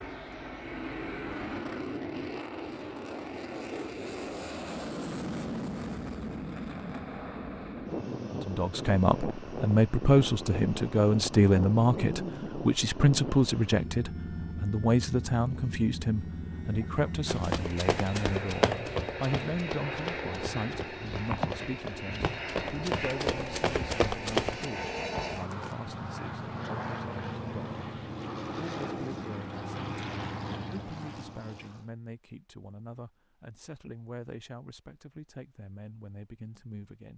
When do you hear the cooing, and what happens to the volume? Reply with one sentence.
The cooing can't be heard in this clip.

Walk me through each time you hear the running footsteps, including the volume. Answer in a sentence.
You can hear the running footsteps from 17.2 to 24.6 s, getting quieter then louder.